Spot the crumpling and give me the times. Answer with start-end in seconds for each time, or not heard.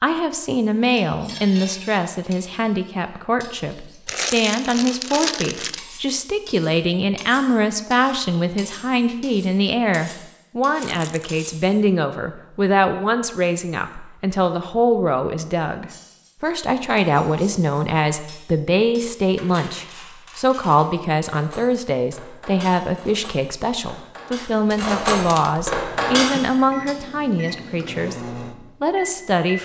4.0-5.8, 10.8-11.4, 24.7-25.6.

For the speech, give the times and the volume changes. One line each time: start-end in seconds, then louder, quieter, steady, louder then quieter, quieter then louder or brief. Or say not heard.
0.0-29.6 steady.